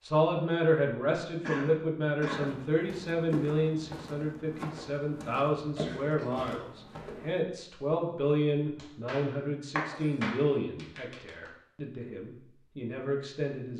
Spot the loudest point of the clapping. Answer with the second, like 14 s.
10 s.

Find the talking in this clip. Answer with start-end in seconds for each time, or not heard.
0.0-13.7.